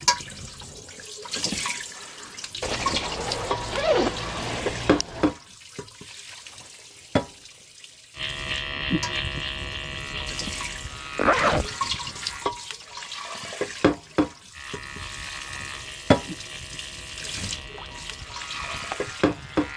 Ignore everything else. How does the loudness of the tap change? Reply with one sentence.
The volume of the tap goes down, then up.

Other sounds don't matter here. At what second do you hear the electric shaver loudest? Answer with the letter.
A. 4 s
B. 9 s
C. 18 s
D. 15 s
B.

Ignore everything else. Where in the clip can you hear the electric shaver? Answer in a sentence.
You can hear the electric shaver from 8.2 to 12.5 s and from 14.5 to 19.7 s.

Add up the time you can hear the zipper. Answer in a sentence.
The zipper can be heard for 3 seconds in total.